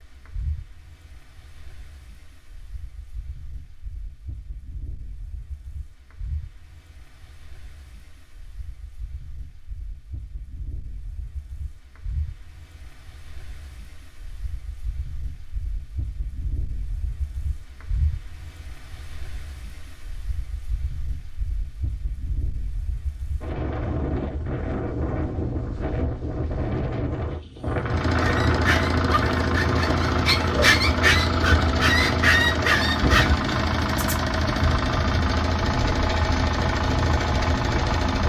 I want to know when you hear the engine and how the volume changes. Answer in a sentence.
The engine can be heard from 27.8 to 38.2 s, at a steady volume.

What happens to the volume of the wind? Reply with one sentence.
The loudness of the wind goes up.